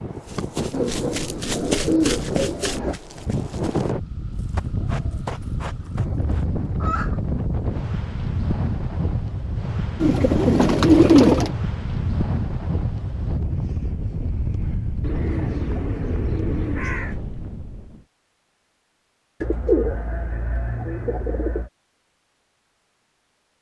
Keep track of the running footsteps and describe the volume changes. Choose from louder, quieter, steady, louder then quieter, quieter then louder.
quieter then louder.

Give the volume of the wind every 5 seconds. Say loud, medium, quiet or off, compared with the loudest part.
loud, loud, loud, loud, off.